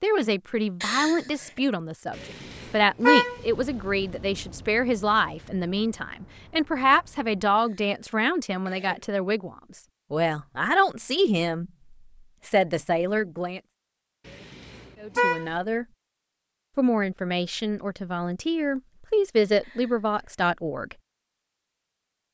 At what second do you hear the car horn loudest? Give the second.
3 s.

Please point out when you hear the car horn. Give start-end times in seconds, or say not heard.
2.1-3.4, 14.2-15.5.